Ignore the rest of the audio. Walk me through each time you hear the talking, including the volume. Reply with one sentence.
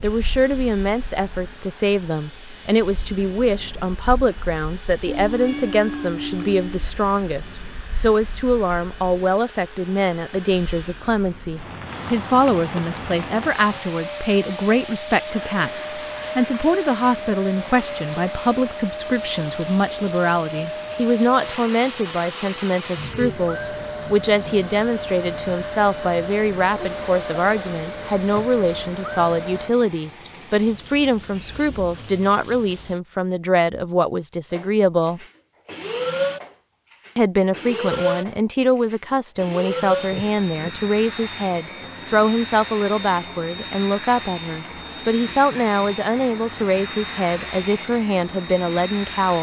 You can hear the talking from 0.0 to 35.2 s, at a steady volume; and from 37.1 to 49.3 s, at a steady volume.